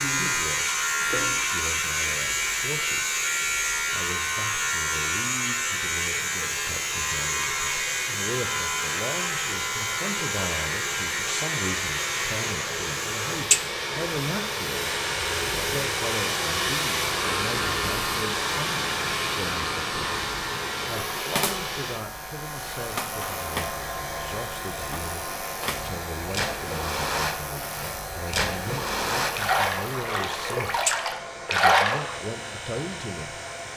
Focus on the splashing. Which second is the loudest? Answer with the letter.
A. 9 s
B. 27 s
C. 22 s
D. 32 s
D.